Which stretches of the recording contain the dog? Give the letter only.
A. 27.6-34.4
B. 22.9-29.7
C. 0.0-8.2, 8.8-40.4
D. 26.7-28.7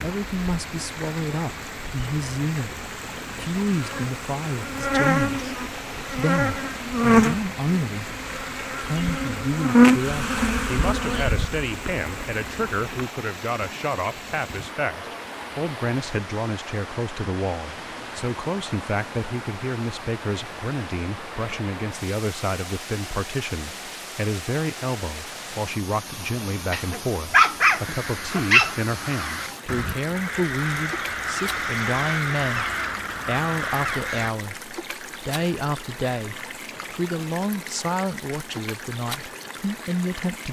D.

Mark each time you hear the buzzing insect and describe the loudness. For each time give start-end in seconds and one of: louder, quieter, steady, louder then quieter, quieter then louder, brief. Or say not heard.
0.0-13.0 louder then quieter.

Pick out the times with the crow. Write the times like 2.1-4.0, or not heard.
27.6-34.4.